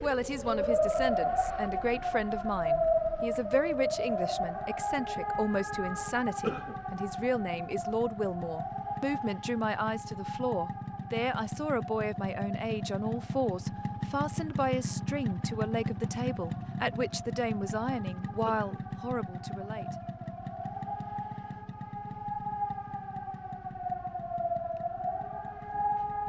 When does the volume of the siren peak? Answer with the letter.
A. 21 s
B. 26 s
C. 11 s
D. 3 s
D.